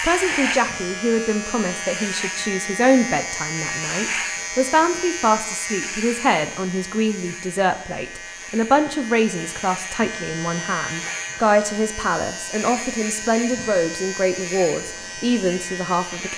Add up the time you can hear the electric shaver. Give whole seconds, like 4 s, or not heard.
16 s.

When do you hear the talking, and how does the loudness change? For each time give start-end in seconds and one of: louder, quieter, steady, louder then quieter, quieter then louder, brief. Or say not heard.
0.0-16.3 steady.